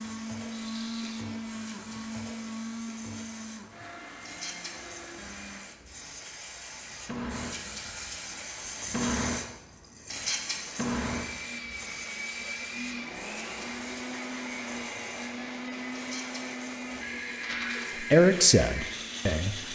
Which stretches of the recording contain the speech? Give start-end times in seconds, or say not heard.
18.0-19.6.